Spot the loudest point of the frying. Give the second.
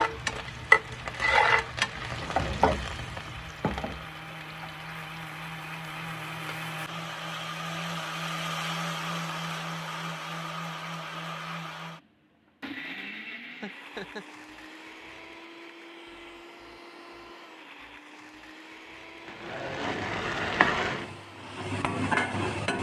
1 s.